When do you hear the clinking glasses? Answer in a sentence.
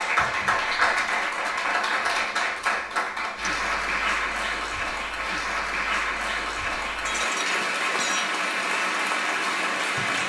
You can hear the clinking glasses from 7.0 to 8.3 s.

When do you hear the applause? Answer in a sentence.
The applause can be heard from 0.0 to 10.2 s.